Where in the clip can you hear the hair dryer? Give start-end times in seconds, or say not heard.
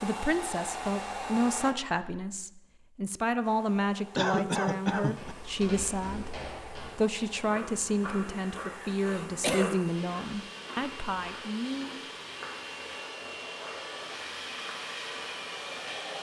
0.0-1.8, 3.4-16.1.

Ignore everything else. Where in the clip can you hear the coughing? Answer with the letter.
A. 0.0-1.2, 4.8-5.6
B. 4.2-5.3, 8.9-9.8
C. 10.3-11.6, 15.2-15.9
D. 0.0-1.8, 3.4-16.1
B.